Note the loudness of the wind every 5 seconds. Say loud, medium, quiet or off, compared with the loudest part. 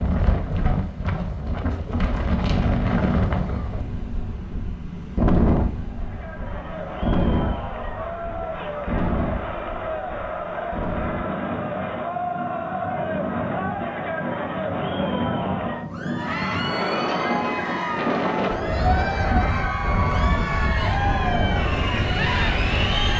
loud, loud, medium, loud, loud.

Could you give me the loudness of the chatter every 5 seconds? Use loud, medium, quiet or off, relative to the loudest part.
off, medium, loud, loud, loud.